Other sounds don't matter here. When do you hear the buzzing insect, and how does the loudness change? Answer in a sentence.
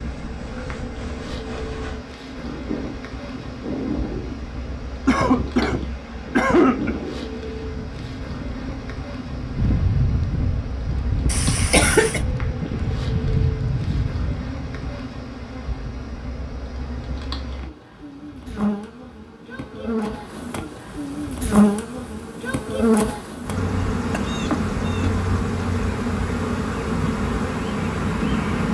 The buzzing insect can be heard from 0.0 to 28.6 s, getting louder.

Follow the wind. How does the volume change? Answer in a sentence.
The volume of the wind goes up.